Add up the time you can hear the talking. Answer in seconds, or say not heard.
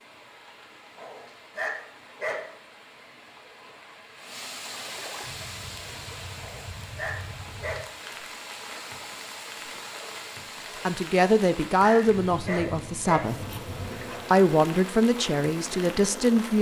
5 s.